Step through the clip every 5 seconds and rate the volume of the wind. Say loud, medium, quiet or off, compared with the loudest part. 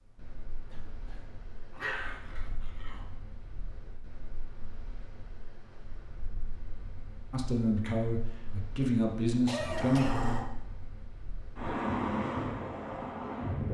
quiet, quiet, loud.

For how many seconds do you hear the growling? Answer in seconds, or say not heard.
2 s.